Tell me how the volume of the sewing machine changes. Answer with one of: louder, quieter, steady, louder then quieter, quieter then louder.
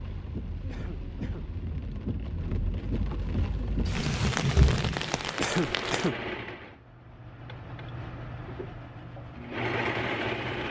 quieter then louder.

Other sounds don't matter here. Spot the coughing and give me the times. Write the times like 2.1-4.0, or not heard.
0.7-1.4, 5.3-6.2.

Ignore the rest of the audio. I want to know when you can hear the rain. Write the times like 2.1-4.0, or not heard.
0.0-6.1.